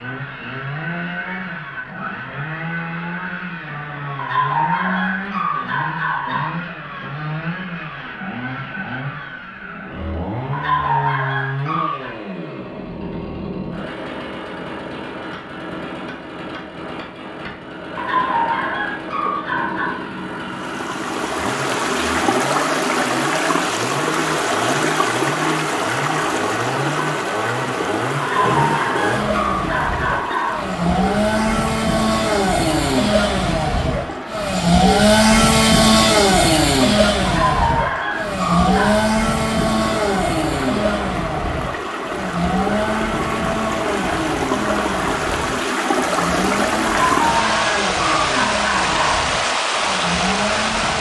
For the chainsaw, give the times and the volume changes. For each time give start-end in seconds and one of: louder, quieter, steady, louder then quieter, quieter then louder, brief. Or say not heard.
0.0-50.9 louder then quieter.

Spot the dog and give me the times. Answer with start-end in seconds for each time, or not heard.
4.2-6.5, 10.5-12.2, 17.9-19.9, 28.2-30.7, 37.2-39.0, 47.0-49.2.